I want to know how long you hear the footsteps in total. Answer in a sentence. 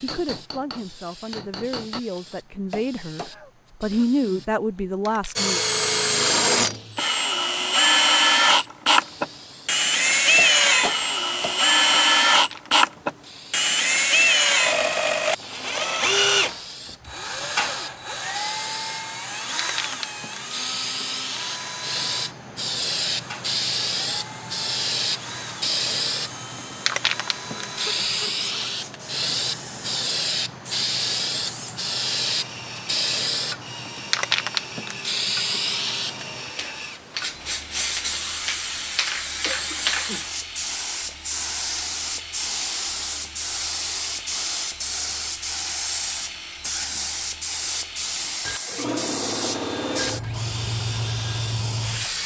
The footsteps can't be heard in this clip.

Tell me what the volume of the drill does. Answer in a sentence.
The volume of the drill goes down.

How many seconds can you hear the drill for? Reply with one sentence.
The drill can be heard for 47 seconds in total.